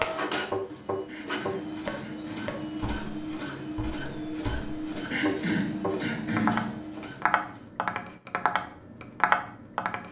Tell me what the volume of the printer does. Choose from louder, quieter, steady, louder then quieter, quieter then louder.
steady.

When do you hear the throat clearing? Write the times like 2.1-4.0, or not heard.
1.1-2.5, 5.1-6.8.